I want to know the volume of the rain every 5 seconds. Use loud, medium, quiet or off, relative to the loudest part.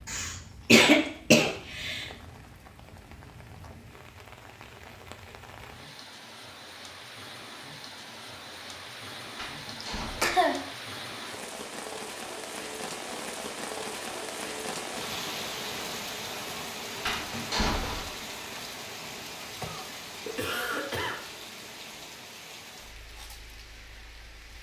quiet, medium, loud, loud, medium.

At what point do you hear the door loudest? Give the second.
18 s.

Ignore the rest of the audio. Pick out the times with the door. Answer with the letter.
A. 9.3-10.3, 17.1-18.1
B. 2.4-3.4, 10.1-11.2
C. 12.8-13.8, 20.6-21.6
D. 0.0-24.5
A.